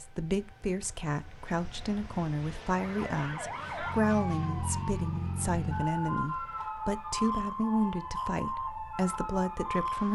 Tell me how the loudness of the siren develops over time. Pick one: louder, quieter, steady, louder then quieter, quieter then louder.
steady.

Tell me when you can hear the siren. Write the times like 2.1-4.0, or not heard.
2.6-10.1.